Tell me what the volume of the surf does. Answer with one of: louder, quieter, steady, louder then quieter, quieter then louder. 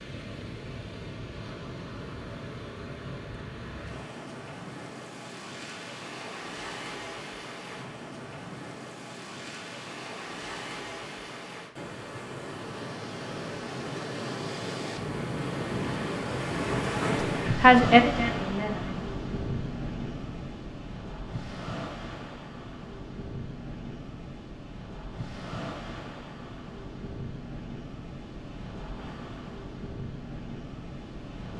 louder then quieter.